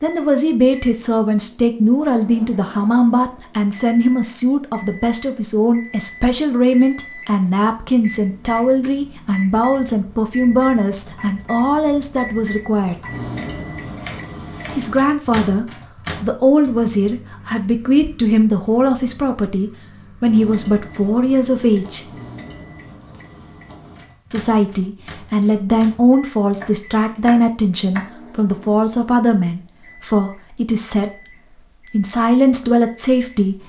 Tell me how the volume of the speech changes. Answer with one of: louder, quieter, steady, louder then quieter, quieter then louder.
steady.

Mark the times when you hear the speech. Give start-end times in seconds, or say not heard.
0.0-12.9, 14.8-22.1, 24.3-33.6.